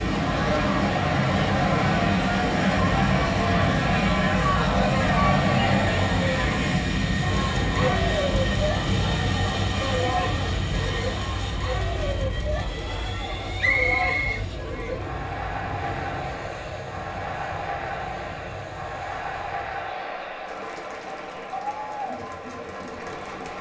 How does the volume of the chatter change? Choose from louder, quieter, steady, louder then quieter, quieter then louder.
quieter.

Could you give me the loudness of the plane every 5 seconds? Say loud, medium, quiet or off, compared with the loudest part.
loud, loud, medium, quiet, quiet.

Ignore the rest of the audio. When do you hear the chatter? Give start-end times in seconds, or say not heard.
0.1-23.5.